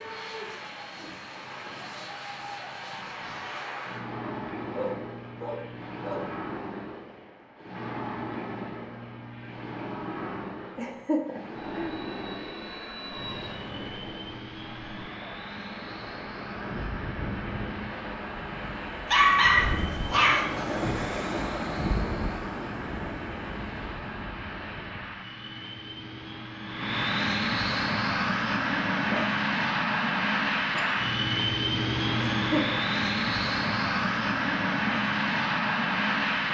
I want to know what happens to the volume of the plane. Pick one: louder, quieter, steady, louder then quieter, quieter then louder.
louder.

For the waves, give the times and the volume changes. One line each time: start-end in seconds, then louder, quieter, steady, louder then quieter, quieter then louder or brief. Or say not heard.
0.0-25.1 louder.